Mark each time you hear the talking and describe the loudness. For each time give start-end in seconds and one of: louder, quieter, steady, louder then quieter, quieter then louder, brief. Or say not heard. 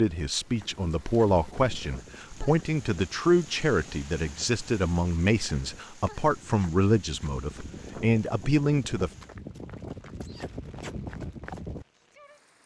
0.0-9.1 steady.